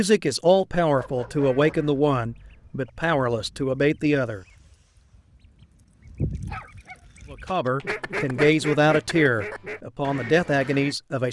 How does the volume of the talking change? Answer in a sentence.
The volume of the talking stays about the same.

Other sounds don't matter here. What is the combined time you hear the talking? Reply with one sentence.
You can hear the talking for 8 seconds altogether.